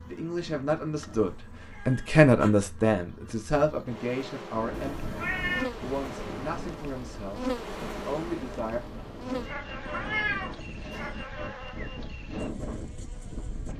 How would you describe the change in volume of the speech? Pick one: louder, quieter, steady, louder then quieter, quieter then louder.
louder then quieter.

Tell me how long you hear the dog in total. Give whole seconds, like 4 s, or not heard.
not heard.